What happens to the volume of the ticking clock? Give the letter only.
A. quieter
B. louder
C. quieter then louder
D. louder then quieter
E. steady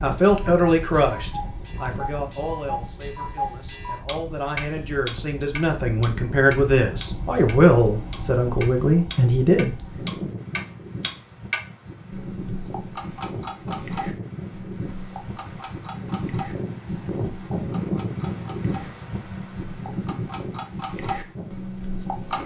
C.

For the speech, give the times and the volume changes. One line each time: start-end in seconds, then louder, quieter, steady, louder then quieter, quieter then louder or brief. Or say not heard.
0.0-10.3 quieter then louder.